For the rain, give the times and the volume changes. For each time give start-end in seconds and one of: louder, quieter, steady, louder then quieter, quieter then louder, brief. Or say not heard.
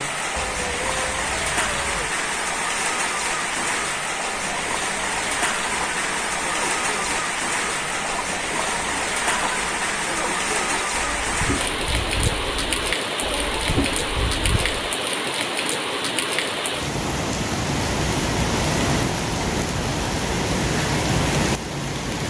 0.0-22.2 steady.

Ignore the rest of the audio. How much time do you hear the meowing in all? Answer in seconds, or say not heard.
2 s.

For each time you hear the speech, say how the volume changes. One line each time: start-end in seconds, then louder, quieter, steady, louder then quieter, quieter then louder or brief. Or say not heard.
not heard.